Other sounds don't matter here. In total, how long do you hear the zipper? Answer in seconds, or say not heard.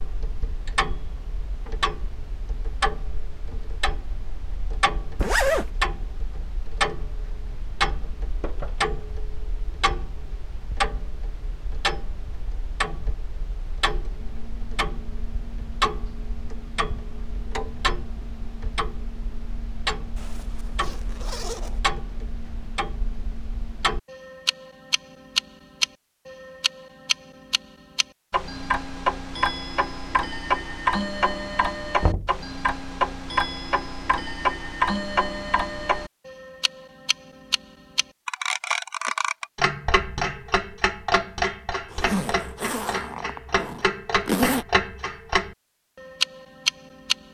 5 s.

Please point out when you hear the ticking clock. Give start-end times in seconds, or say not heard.
0.0-47.1.